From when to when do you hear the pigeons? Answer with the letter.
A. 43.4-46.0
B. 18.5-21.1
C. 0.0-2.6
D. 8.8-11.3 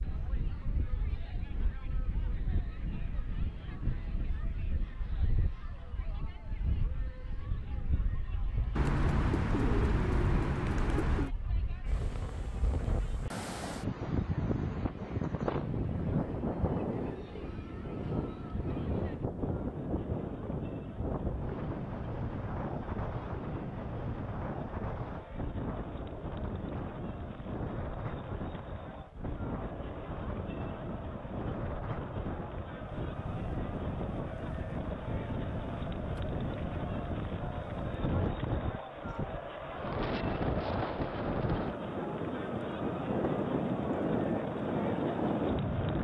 D.